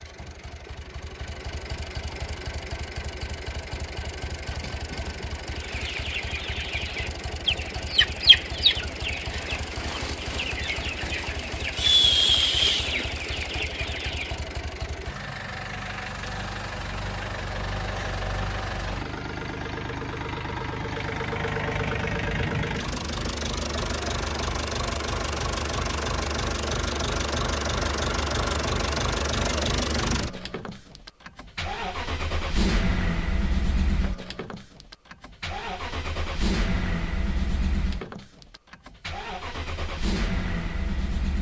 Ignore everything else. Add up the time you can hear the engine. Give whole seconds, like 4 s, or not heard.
41 s.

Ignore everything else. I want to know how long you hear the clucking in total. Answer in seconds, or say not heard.
9 s.